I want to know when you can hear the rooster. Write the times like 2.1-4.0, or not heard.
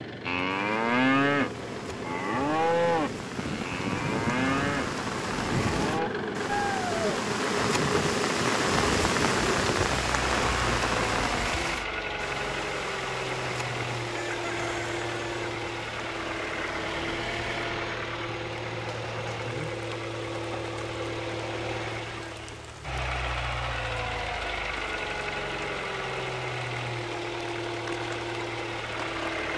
14.1-15.4.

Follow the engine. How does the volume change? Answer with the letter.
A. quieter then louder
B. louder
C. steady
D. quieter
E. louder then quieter
C.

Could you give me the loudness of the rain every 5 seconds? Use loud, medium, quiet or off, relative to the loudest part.
medium, loud, loud, quiet, quiet, quiet.